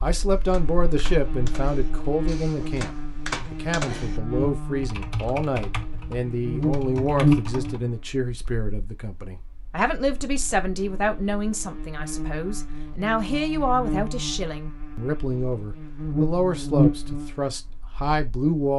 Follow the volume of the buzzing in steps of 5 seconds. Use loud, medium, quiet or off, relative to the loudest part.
medium, loud, medium, loud.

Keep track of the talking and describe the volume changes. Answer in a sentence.
The loudness of the talking stays about the same.